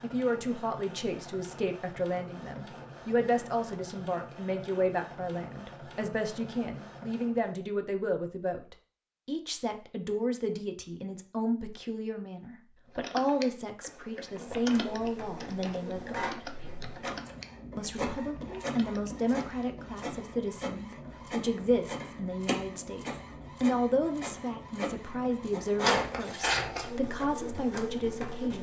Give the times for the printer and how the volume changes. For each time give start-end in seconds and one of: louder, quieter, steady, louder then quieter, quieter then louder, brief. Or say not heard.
0.0-7.5 steady
14.2-28.5 louder.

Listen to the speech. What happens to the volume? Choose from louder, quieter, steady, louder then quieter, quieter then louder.
steady.